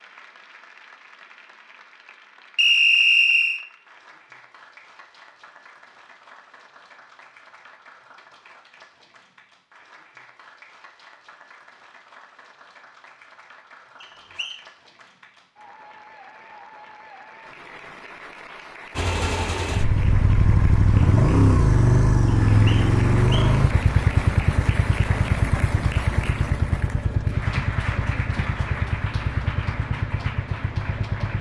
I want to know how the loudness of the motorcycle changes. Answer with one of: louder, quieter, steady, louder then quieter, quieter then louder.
quieter.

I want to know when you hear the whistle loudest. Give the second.
3 s.